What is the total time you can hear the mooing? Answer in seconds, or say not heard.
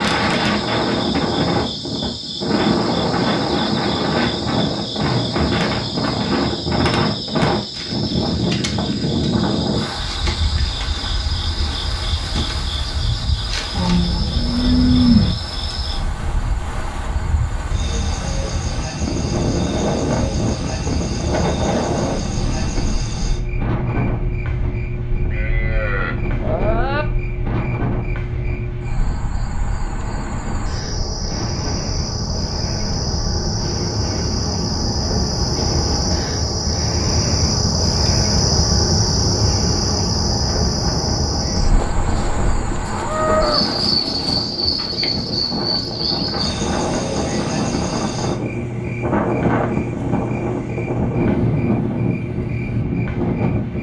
6 s.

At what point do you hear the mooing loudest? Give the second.
15 s.